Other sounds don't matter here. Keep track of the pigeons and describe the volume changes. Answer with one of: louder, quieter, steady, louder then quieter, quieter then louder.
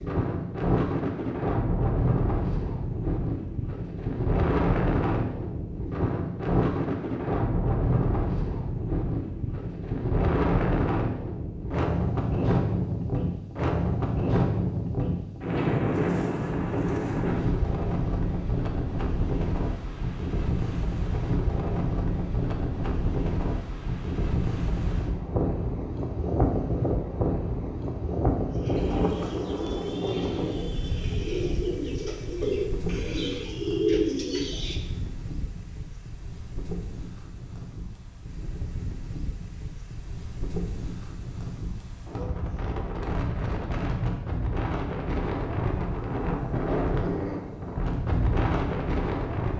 louder.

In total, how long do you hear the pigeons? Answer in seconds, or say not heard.
6 s.